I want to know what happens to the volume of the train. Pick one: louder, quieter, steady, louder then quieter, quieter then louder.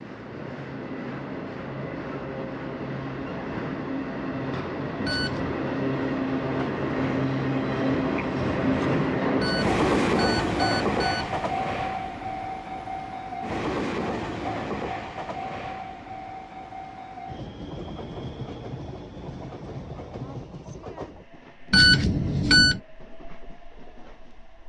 louder then quieter.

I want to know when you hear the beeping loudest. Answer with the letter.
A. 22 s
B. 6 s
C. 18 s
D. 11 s
A.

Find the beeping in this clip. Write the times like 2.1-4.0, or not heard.
5.0-5.5, 9.4-11.4, 21.7-22.8.